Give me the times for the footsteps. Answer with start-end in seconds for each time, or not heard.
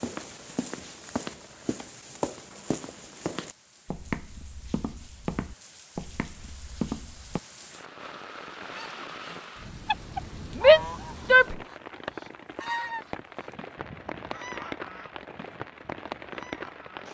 0.0-7.4.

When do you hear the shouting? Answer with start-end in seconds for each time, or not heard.
10.6-11.6.